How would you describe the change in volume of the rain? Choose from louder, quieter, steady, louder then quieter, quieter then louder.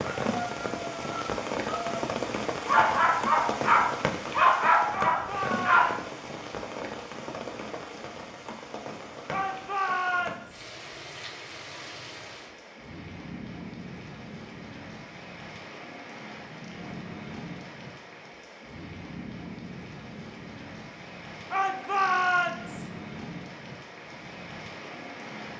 quieter.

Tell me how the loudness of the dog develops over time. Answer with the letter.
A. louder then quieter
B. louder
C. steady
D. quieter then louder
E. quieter
B.